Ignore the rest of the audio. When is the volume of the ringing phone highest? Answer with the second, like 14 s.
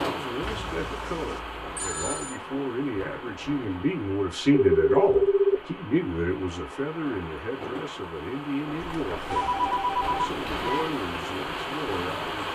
5 s.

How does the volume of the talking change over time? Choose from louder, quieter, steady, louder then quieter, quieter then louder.
louder then quieter.